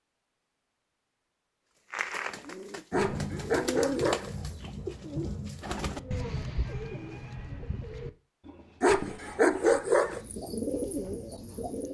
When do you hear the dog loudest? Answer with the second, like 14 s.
10 s.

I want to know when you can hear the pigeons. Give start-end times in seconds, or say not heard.
1.9-11.9.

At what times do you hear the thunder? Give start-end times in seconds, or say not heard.
2.9-6.5.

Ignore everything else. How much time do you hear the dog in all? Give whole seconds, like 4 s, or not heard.
3 s.